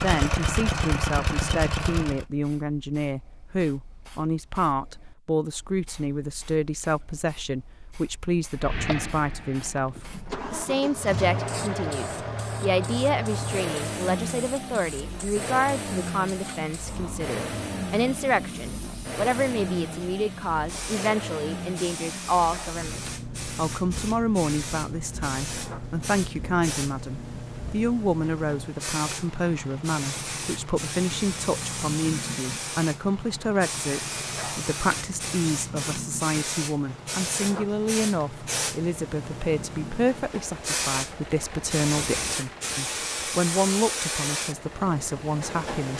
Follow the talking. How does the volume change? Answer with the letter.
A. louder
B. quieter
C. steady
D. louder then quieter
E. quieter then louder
C.